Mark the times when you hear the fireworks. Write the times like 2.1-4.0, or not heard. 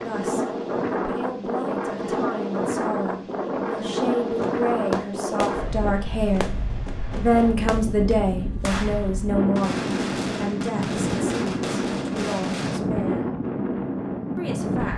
4.3-12.8.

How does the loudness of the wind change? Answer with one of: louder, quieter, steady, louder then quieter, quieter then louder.
quieter then louder.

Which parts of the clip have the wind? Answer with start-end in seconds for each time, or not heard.
0.0-14.9.